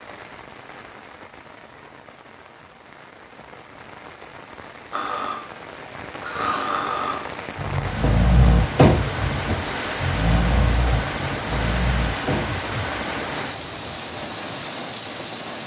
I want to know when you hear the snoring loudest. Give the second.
9 s.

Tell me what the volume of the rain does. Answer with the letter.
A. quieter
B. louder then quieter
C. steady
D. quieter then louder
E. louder
E.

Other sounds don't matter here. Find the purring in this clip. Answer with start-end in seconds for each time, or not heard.
not heard.